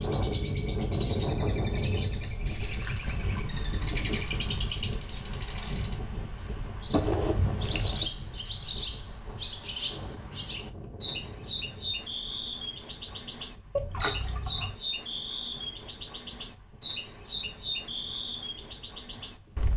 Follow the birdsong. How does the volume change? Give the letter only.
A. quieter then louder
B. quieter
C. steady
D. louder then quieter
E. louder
C.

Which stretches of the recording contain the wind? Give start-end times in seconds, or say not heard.
0.0-19.7.